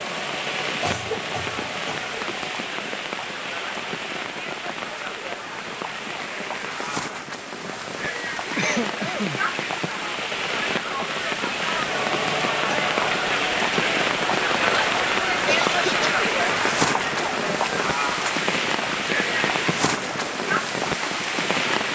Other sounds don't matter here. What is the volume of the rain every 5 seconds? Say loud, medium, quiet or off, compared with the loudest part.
medium, medium, loud, loud, loud.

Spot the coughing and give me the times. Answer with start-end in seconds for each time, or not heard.
0.8-2.0, 8.6-9.4, 15.4-16.2.